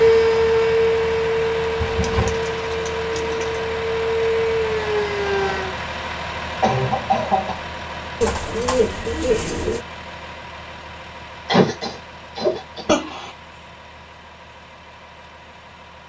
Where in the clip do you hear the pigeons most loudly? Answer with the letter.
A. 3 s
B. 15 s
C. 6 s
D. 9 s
D.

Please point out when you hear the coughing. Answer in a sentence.
The coughing can be heard from 1.8 to 2.4 s, from 6.6 to 7.5 s and from 11.4 to 13.3 s.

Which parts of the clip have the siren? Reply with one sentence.
The siren can be heard from 0.0 to 5.8 s.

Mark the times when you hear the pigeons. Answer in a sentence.
The pigeons can be heard from 2.0 to 3.6 s and from 8.2 to 9.8 s.